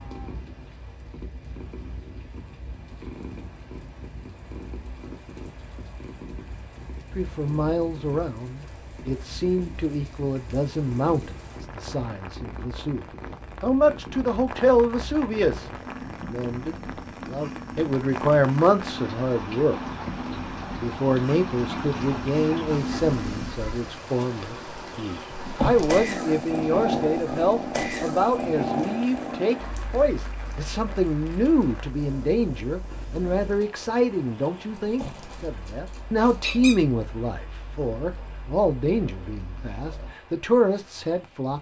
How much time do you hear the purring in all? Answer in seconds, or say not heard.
40 s.